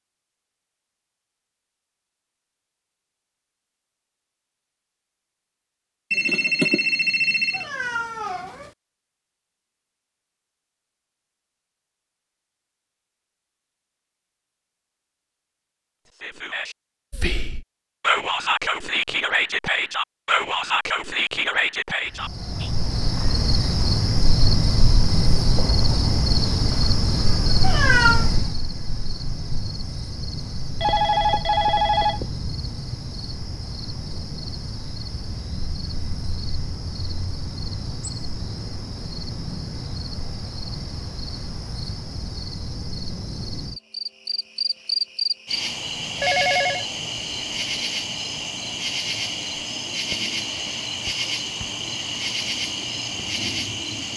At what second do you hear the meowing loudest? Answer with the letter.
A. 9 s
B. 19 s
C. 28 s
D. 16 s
C.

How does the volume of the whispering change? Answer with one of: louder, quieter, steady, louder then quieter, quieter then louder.
louder.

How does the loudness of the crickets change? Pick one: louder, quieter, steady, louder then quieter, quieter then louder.
quieter then louder.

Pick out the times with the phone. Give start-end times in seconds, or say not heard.
6.1-7.7, 30.8-32.3, 46.2-46.9.